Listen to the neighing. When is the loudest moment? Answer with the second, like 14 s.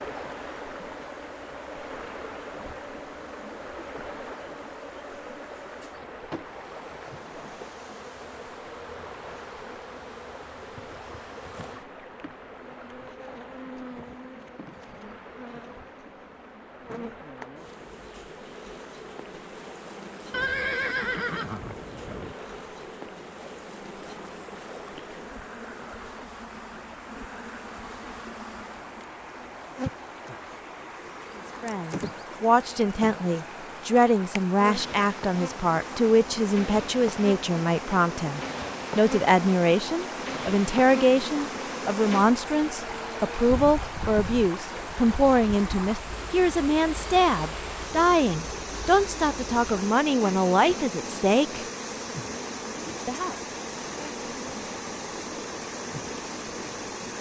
21 s.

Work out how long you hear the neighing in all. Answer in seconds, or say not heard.
2 s.